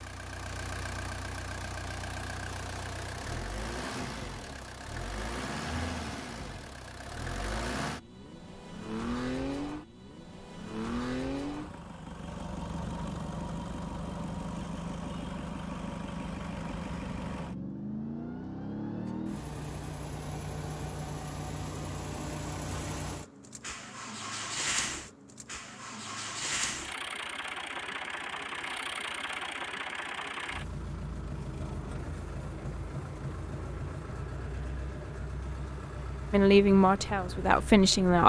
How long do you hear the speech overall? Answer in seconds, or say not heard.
2 s.